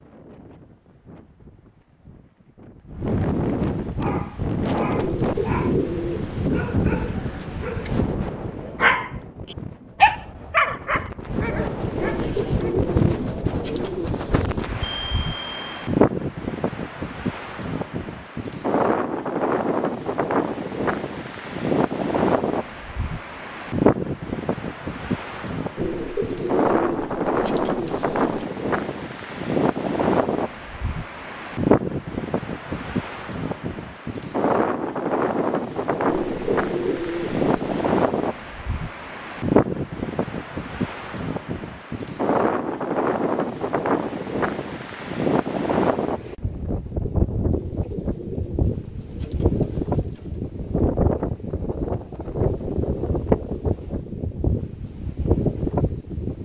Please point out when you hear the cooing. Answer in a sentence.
The cooing can be heard from 5.0 to 6.3 s, from 11.9 to 14.7 s, from 25.8 to 28.4 s, from 36.0 to 37.9 s and from 47.5 to 50.5 s.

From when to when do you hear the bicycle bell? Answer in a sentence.
The bicycle bell can be heard from 14.8 to 15.8 s.